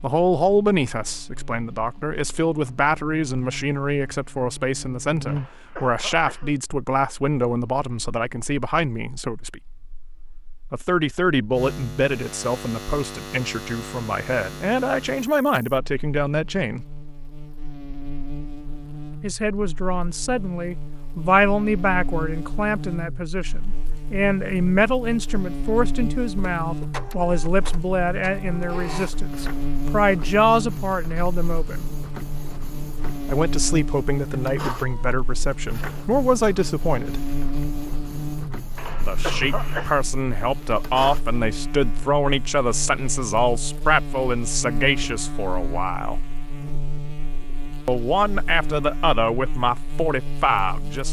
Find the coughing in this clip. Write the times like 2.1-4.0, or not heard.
5.2-6.5, 38.8-39.9.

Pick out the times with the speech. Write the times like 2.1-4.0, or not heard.
0.0-9.6, 10.7-16.9, 19.2-31.9, 33.2-37.2, 39.0-46.1, 47.9-51.0.